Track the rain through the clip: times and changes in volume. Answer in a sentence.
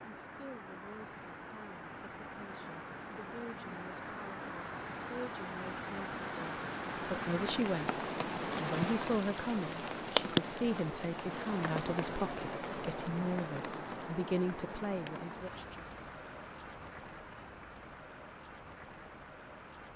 You can hear the rain from 0.0 to 19.9 s, getting louder then quieter.